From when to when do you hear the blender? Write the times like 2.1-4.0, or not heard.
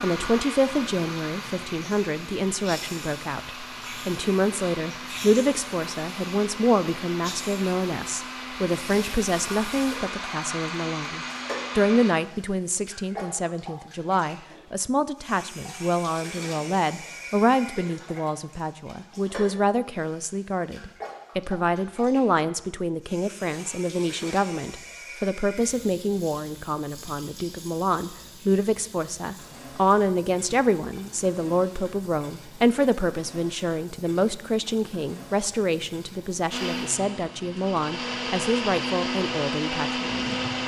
0.0-12.2, 36.5-40.6.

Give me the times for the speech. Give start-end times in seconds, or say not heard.
0.0-40.4.